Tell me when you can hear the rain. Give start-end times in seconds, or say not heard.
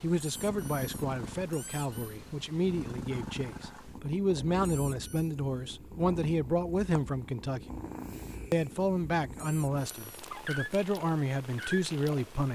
not heard.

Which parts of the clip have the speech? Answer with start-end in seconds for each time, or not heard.
0.0-7.6, 8.5-12.4.